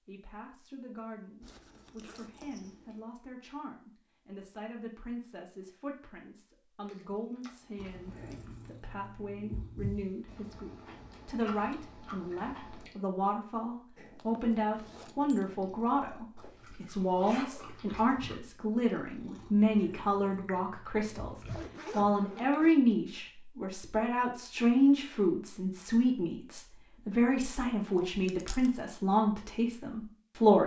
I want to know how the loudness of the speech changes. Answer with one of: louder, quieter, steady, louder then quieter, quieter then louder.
louder.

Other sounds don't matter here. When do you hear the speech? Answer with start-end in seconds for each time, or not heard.
0.1-30.6.